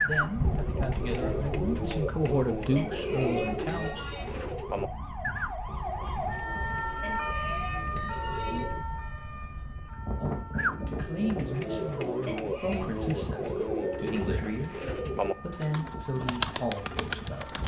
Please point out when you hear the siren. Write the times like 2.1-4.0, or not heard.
0.1-17.6.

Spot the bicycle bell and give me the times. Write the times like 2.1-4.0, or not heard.
2.8-4.3, 7.0-8.7, 12.2-12.8.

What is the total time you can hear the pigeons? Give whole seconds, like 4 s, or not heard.
16 s.